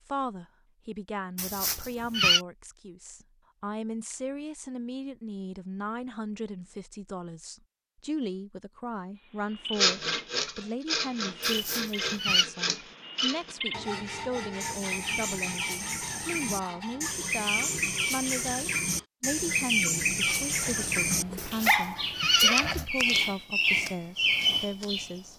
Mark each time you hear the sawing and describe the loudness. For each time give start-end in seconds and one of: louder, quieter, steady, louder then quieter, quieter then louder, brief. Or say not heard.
9.7-19.1 quieter.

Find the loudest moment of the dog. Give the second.
22 s.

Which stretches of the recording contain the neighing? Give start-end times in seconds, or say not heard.
1.4-2.4, 11.4-12.4, 21.4-22.9.